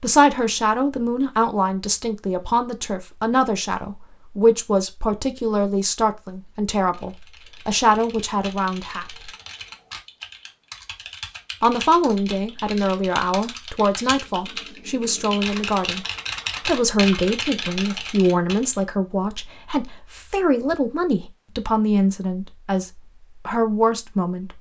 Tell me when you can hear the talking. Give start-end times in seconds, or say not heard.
0.0-9.3, 11.6-16.1, 16.6-24.5.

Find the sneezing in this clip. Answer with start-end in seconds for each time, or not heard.
not heard.